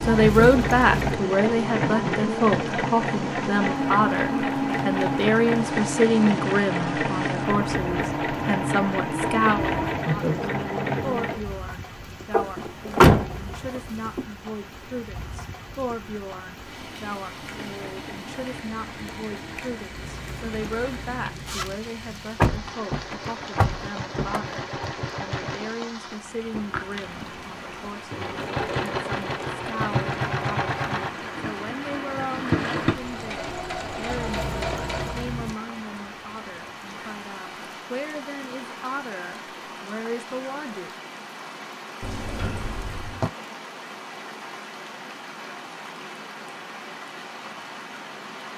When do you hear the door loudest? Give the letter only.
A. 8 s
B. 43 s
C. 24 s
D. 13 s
D.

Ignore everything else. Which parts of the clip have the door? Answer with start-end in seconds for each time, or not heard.
12.3-14.2, 22.4-24.9, 42.0-43.3.